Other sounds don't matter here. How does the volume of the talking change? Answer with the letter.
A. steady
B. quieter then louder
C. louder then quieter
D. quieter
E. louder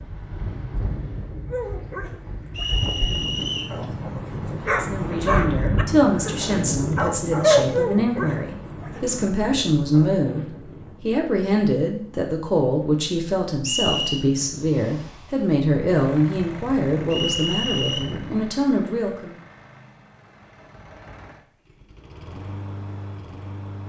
A.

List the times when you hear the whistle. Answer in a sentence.
The whistle can be heard from 2.5 to 3.8 s, from 13.7 to 14.2 s and from 17.1 to 18.1 s.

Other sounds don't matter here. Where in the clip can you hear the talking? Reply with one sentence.
You can hear the talking from 4.8 to 19.4 s.